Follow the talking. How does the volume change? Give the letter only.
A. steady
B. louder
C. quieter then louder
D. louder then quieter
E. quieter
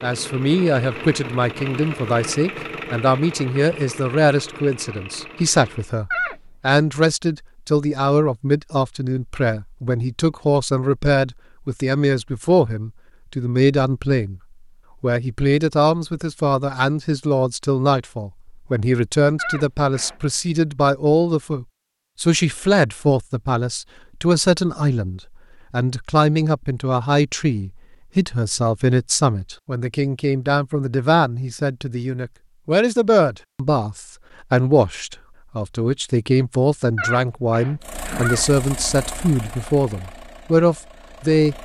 A.